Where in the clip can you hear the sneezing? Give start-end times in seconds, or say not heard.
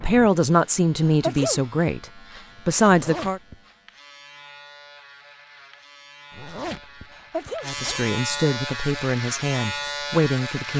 1.1-1.6, 7.2-7.7.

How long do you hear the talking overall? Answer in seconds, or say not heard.
6 s.